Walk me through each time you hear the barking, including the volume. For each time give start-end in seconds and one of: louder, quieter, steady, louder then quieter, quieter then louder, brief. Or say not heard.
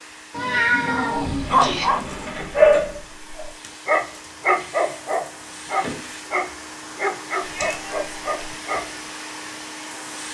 0.8-8.9 quieter.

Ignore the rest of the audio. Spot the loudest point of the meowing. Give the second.
1 s.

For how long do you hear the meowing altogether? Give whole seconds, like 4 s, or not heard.
3 s.